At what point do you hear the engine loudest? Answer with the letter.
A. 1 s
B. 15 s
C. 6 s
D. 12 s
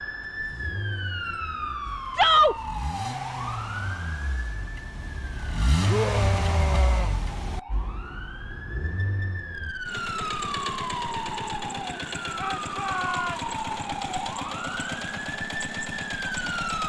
C.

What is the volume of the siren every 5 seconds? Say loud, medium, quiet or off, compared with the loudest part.
loud, medium, loud, loud.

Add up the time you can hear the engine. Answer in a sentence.
You can hear the engine for 17 seconds altogether.